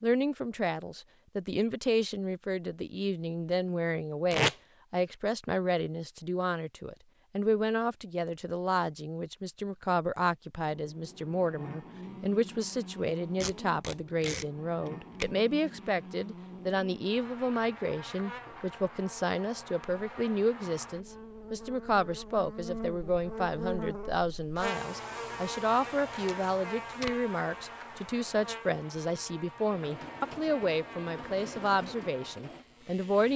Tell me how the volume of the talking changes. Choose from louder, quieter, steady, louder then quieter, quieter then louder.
steady.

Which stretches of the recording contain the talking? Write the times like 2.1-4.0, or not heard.
0.0-33.3.